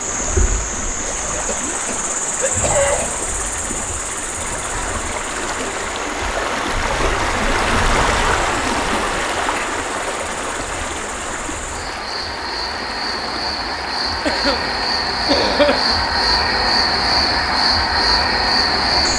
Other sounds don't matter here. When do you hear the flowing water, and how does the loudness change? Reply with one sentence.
You can hear the flowing water from 0.0 to 19.1 s, getting louder then quieter.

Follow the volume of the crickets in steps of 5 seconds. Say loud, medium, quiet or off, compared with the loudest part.
medium, quiet, medium, loud.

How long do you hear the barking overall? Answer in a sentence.
You can't hear the barking here.